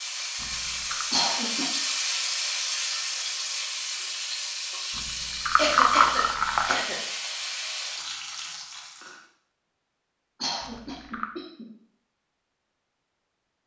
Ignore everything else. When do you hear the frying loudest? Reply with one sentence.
The loudest moment of the frying is at 2 seconds.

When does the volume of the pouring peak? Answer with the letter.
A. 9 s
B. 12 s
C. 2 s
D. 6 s
D.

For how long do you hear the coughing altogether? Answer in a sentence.
You can hear the coughing for 3 seconds altogether.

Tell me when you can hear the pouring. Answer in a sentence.
The pouring can be heard from 0.3 to 1.1 s, from 4.9 to 6.8 s and from 10.6 to 11.3 s.